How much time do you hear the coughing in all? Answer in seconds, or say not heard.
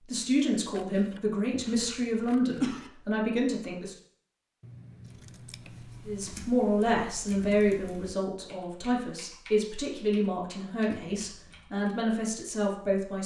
2 s.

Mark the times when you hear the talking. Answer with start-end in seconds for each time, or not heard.
0.1-4.0, 6.0-13.2.